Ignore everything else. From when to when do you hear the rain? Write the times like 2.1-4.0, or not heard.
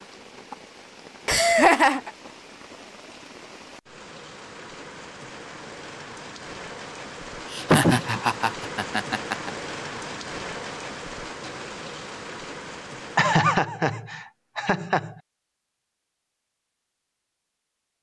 0.0-13.3.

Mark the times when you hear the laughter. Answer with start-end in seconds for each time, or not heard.
1.2-2.1, 7.5-9.5, 13.2-15.2.